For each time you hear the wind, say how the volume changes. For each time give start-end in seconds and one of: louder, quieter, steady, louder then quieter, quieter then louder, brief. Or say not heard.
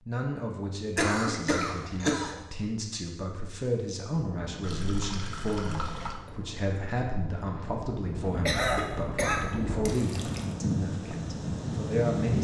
4.1-12.3 louder.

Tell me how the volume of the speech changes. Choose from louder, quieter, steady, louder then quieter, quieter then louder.
steady.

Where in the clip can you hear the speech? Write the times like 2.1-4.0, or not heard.
0.1-12.3.